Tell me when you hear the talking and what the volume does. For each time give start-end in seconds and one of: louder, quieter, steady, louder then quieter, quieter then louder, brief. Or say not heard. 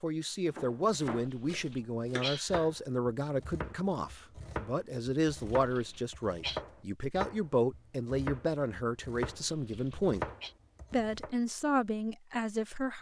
0.0-10.2 steady
10.9-12.9 brief.